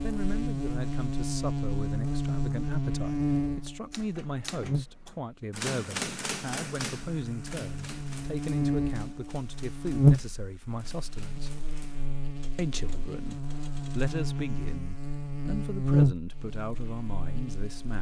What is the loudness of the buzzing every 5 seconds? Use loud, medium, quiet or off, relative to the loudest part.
loud, medium, loud, loud.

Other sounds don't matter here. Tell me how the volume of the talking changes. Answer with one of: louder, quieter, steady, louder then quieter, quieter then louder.
steady.